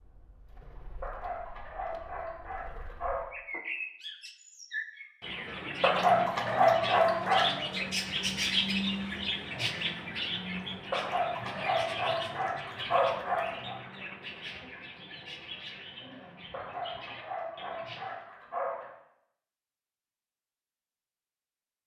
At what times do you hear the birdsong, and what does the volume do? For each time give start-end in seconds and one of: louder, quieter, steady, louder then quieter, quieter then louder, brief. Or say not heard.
0.0-18.1 louder then quieter.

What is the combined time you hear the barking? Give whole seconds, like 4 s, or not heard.
9 s.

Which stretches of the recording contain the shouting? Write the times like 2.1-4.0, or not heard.
not heard.